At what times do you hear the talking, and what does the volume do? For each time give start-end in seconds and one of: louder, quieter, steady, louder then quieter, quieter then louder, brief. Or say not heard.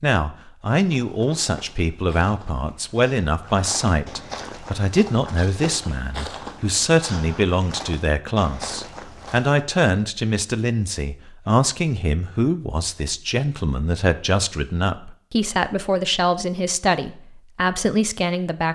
0.0-18.6 steady.